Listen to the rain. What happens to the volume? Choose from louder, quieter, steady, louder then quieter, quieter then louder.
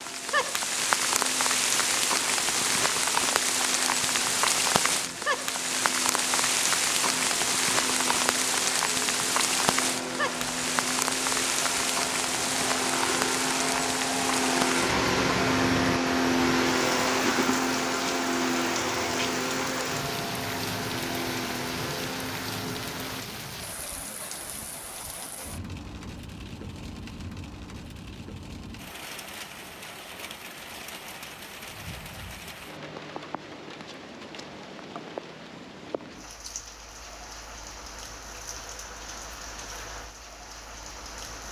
quieter.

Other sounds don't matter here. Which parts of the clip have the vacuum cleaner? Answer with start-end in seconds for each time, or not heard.
0.0-23.2.